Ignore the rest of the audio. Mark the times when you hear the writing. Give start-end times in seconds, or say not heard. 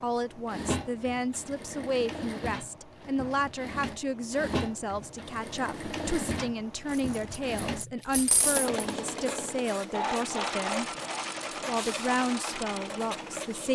8.4-13.7.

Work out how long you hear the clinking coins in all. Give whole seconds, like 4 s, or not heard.
2 s.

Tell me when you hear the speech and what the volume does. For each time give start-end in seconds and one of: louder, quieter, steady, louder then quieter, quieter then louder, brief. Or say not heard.
0.0-10.8 steady
11.7-13.7 brief.